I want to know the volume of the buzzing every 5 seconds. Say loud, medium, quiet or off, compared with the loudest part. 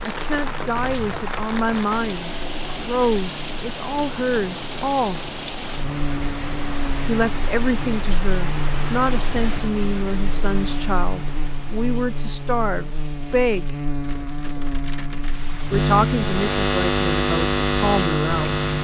quiet, medium, medium, loud.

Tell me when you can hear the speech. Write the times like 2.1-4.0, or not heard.
0.1-5.2, 7.0-13.7, 15.7-18.6.